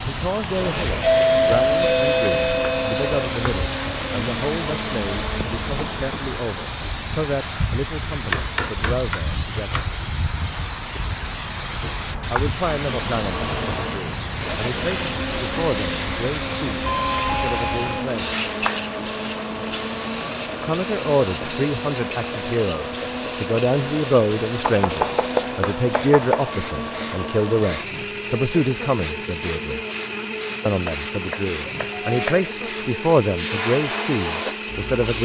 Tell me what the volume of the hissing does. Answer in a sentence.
The loudness of the hissing stays about the same.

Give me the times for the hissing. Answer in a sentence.
The hissing can be heard from 0.0 to 35.2 s.